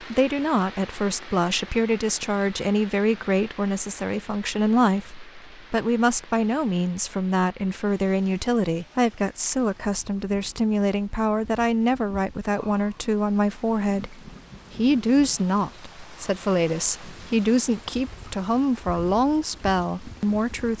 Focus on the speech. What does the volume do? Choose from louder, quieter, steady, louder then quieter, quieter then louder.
steady.